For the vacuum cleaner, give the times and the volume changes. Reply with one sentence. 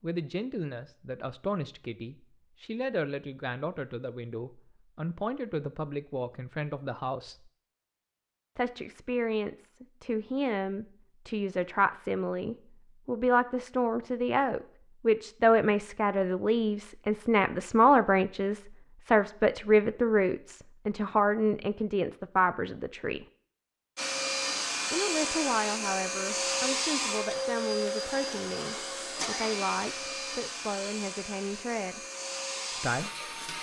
The vacuum cleaner can be heard from 23.9 to 33.5 s, getting quieter.